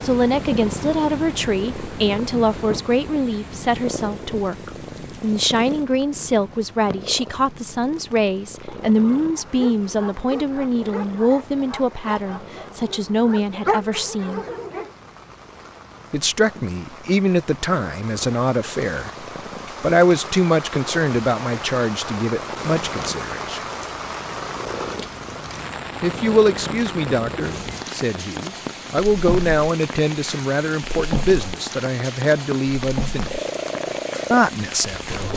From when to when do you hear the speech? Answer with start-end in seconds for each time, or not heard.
0.0-14.4, 16.1-23.6, 26.0-33.5, 34.3-35.3.